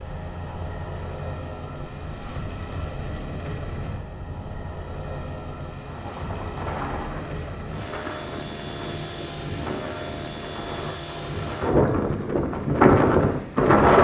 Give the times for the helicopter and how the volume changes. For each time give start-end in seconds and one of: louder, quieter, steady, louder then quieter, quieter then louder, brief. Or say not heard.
0.0-11.7 steady.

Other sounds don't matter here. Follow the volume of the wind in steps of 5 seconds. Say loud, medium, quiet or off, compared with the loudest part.
quiet, quiet, loud.